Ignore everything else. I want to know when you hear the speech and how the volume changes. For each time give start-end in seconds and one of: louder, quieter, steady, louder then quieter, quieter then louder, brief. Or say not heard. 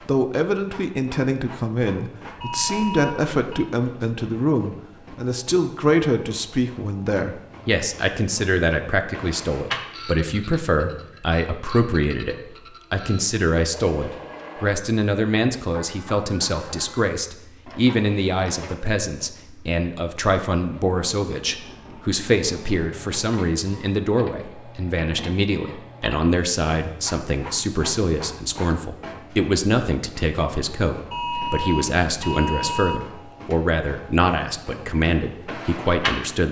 0.1-36.4 steady.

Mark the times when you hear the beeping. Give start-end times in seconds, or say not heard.
2.4-3.6, 31.1-33.0.